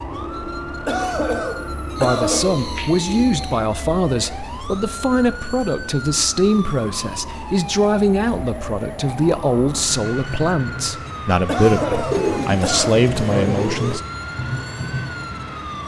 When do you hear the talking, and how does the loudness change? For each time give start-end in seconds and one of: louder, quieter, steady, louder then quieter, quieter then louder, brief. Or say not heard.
1.9-14.0 steady.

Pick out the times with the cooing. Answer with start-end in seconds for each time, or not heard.
1.9-3.6, 12.1-14.0.